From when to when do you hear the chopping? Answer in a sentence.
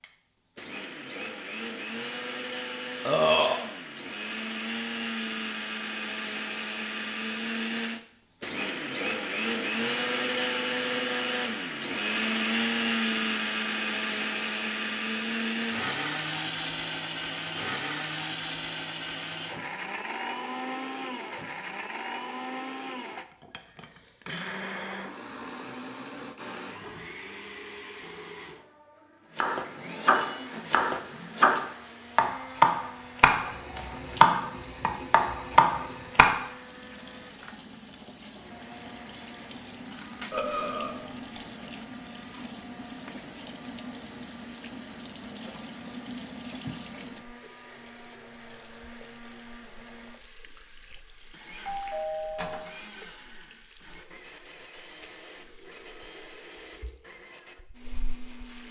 The chopping can be heard from 29.4 to 36.4 s.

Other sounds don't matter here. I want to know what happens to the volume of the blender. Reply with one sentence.
The loudness of the blender goes down.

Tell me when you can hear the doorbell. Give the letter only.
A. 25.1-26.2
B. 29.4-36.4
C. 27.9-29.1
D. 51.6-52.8
D.